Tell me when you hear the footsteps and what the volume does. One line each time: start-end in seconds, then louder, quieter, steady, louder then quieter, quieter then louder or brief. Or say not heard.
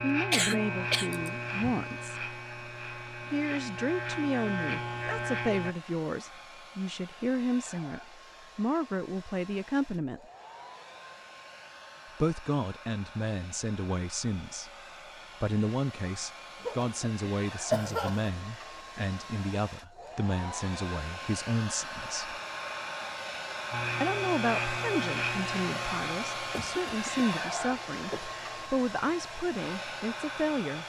not heard.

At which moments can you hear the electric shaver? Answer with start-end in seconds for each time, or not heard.
0.0-5.8, 23.7-30.6.